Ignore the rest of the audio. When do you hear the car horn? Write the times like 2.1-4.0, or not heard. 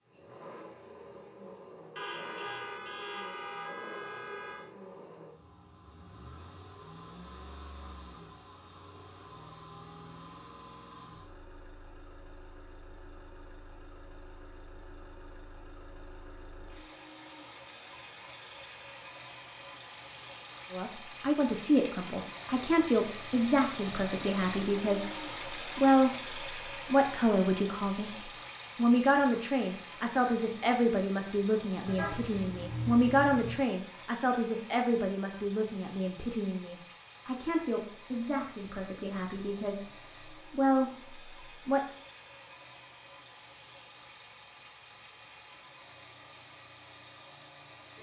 1.9-4.7, 31.9-33.6.